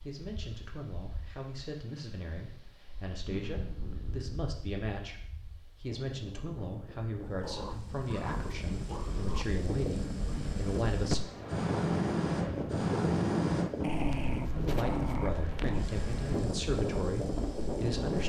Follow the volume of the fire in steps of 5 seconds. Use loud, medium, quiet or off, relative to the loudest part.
off, quiet, loud, quiet.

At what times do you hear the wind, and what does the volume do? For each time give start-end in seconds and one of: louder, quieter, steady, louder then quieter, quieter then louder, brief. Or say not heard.
0.0-18.2 louder.